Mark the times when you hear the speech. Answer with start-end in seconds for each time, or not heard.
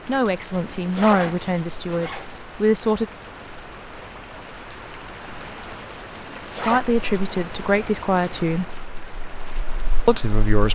0.1-3.0, 6.7-8.7, 10.1-10.7.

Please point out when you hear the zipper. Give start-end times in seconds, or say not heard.
0.7-2.4, 6.1-6.8.